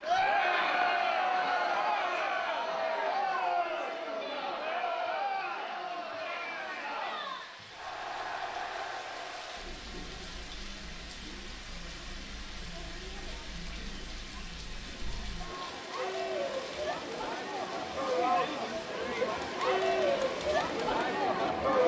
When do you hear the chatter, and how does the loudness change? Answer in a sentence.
The chatter can be heard from 0.0 to 21.8 s, getting quieter then louder.